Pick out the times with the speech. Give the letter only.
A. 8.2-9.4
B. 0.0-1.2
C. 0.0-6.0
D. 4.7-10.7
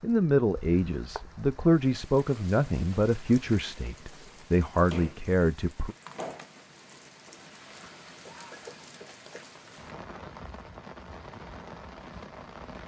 C.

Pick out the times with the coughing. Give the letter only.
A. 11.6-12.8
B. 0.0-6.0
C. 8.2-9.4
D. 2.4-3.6
C.